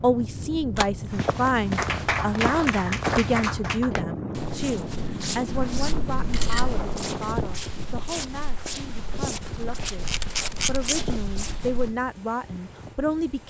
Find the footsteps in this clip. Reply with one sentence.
You can hear the footsteps from 1.1 to 11.9 s.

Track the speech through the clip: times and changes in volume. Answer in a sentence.
You can hear the speech from 0.0 to 13.4 s, getting quieter then louder.